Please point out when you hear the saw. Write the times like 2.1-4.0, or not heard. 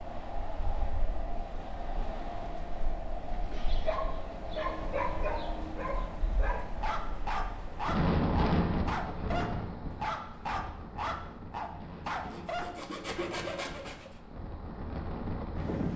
12.2-14.2.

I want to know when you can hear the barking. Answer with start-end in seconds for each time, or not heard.
3.3-12.8.